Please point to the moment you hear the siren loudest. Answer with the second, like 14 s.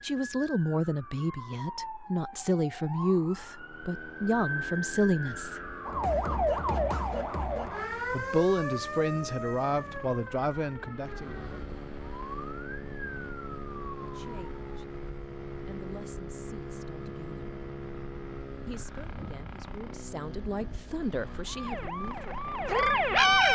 23 s.